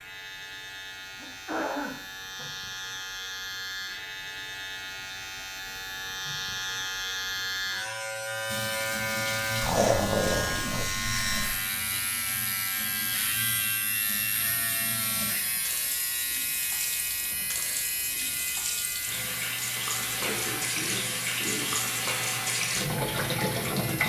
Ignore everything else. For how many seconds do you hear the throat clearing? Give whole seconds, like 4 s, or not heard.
4 s.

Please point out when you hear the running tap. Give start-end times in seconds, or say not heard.
8.4-24.0.